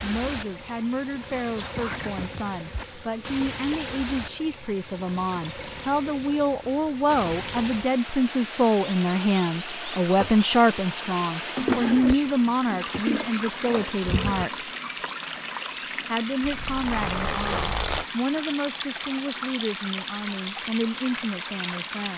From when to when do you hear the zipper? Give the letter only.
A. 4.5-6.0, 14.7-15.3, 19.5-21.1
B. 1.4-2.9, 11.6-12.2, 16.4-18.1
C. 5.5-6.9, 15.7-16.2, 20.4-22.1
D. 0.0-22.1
B.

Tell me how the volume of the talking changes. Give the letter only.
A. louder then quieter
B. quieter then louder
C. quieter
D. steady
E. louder
A.